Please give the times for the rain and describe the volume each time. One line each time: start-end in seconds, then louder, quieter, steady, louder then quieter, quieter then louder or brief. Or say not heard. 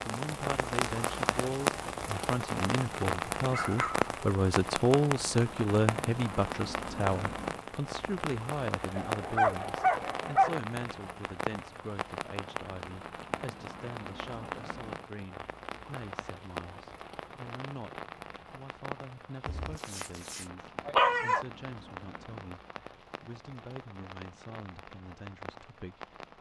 0.0-26.3 quieter.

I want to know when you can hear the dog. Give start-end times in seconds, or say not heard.
3.5-4.1, 8.9-10.6, 19.4-21.4.